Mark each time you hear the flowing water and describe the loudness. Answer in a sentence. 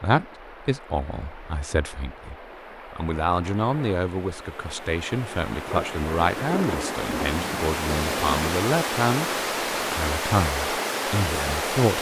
You can hear the flowing water from 0.0 to 11.9 s, getting louder.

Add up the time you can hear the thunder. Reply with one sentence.
The thunder can be heard for 3 seconds in total.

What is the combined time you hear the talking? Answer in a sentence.
The talking can be heard for 11 seconds in total.